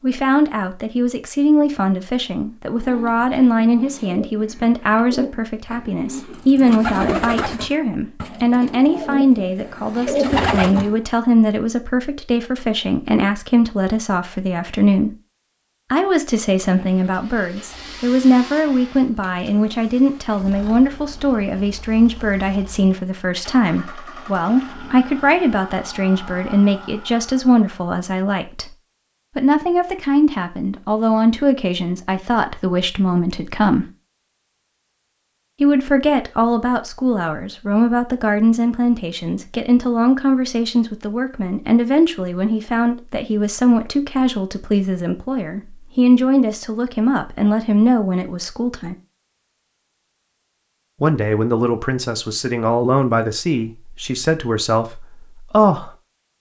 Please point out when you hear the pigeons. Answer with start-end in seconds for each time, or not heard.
2.7-11.1.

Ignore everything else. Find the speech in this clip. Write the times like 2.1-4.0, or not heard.
0.0-15.2, 15.9-28.7, 29.4-33.9, 35.6-49.0, 51.0-55.9.